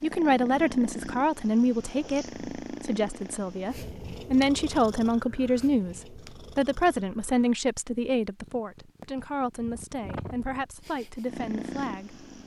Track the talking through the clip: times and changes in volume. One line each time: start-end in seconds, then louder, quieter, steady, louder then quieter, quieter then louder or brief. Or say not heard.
0.0-12.2 quieter.